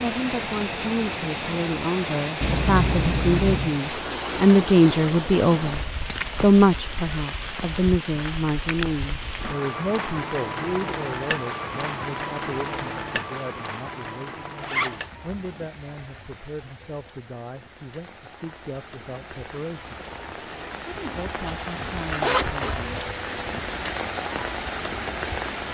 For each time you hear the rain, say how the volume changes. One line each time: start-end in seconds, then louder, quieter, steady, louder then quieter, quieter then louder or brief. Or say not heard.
0.0-25.6 quieter then louder.